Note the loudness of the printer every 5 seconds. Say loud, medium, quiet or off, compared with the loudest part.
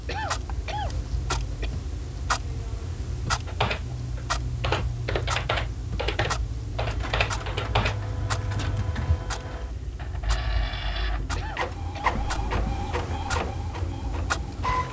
off, medium, loud.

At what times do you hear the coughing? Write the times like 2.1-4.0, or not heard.
0.1-1.7, 11.3-12.2.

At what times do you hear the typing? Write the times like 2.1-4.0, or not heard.
3.5-9.2.